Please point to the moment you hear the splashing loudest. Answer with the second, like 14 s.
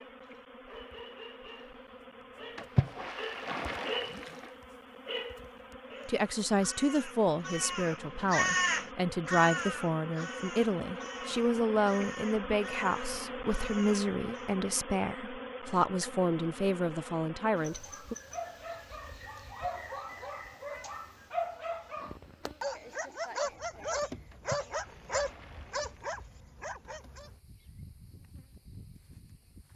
3 s.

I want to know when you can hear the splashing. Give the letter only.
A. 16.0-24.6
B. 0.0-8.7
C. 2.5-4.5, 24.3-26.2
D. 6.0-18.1
C.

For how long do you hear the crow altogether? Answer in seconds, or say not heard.
9 s.